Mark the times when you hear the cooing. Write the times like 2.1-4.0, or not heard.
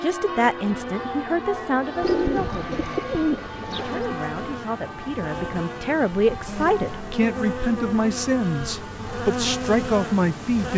2.0-4.0.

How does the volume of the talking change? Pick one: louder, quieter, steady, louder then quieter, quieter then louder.
quieter then louder.